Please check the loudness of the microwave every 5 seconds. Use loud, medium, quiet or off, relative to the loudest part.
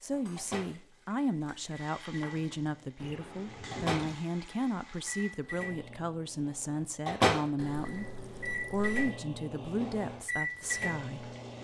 medium, loud, loud.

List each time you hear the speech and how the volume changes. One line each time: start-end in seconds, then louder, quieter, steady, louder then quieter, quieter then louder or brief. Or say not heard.
0.0-11.3 steady.